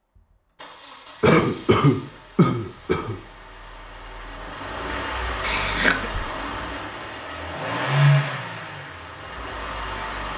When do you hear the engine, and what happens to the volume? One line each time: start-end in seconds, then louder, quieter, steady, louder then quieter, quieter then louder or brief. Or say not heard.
0.1-10.3 louder.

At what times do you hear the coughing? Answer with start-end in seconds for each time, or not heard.
1.2-3.1, 5.4-6.1.